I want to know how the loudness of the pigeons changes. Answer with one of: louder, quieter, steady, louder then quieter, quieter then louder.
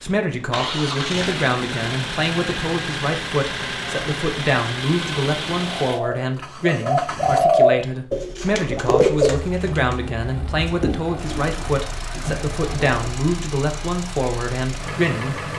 quieter.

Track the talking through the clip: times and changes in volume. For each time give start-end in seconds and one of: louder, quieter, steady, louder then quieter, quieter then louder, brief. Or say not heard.
0.0-15.5 steady.